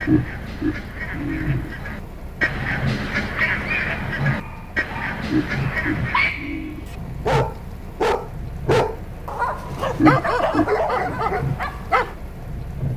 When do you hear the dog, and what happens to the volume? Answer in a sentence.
You can hear the dog from 3.3 to 12.2 s, getting louder.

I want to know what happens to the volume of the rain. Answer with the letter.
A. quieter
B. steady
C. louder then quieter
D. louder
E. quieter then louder
B.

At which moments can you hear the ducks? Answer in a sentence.
The ducks can be heard from 0.0 to 6.3 s.